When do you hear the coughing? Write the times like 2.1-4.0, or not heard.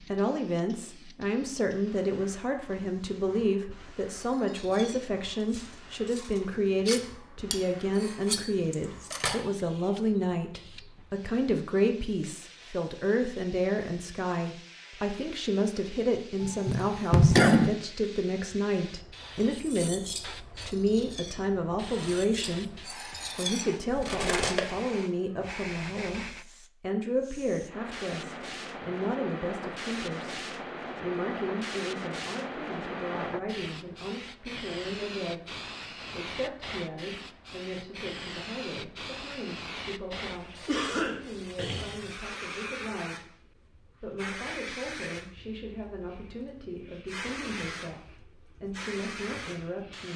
16.4-17.7, 40.6-42.0.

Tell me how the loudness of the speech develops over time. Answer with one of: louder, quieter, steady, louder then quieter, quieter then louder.
quieter.